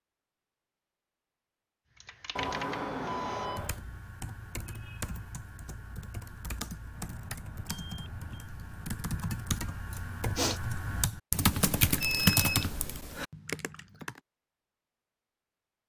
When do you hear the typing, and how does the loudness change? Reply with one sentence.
The typing can be heard from 1.9 to 14.2 s, getting louder.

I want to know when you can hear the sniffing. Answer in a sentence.
The sniffing can be heard from 9.9 to 10.6 s.